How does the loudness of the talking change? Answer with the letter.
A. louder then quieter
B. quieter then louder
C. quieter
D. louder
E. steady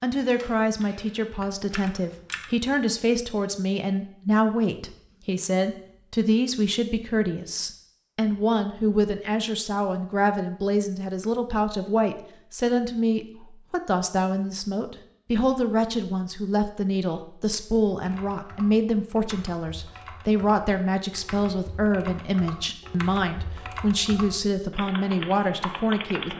E.